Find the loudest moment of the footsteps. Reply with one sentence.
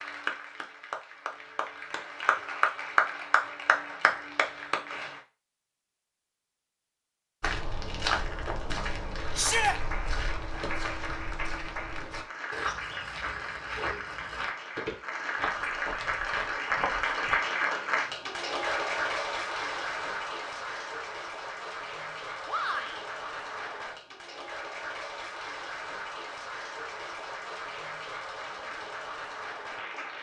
The loudest moment of the footsteps is at 8 seconds.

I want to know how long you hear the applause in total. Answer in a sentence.
You can hear the applause for 26 seconds altogether.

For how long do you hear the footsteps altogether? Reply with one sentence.
The footsteps can be heard for 10 seconds in total.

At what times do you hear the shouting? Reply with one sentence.
The shouting can be heard from 9.3 to 9.8 s and from 22.4 to 23.1 s.